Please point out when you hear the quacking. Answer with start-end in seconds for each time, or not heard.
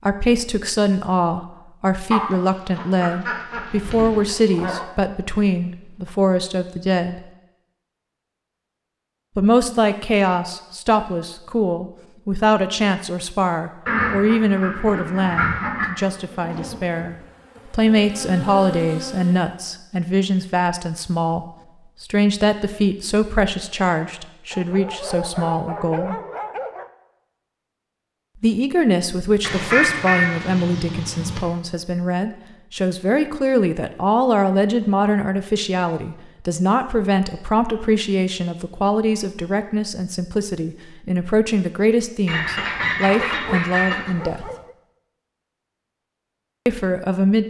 2.1-4.8, 13.8-15.8, 29.4-31.4, 42.2-44.1.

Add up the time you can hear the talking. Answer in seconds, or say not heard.
41 s.